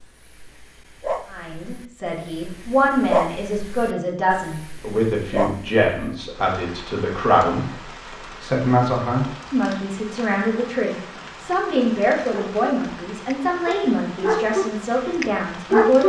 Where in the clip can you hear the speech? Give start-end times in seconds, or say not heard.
1.3-16.0.